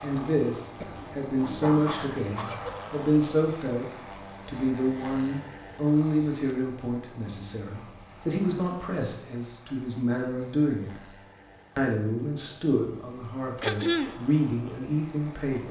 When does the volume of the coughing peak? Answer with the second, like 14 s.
14 s.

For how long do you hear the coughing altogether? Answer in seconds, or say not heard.
3 s.